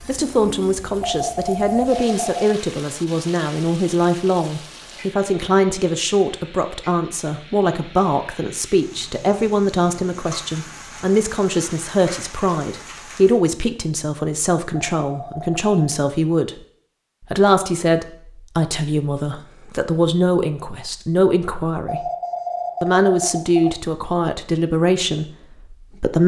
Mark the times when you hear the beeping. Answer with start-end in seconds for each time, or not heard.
1.0-2.5, 14.7-15.8, 21.9-23.8.